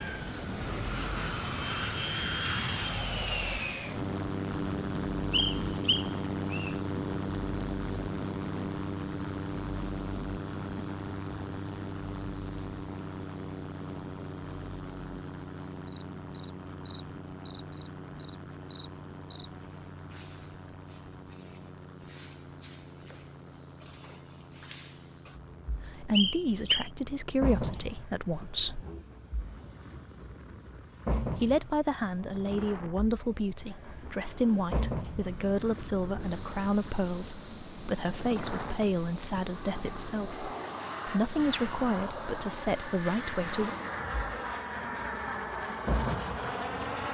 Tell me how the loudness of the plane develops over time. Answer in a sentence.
The loudness of the plane goes down, then up.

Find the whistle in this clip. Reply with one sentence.
You can hear the whistle from 5.3 to 6.8 s and from 26.1 to 26.9 s.